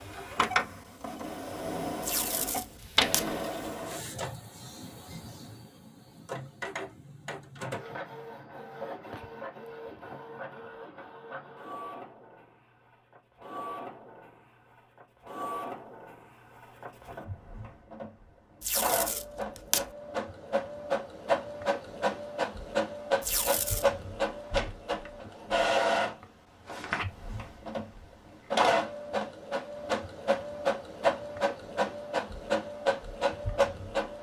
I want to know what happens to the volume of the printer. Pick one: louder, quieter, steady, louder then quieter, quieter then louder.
quieter then louder.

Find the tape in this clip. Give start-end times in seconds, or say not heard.
2.0-3.2, 18.6-19.9, 23.2-23.9.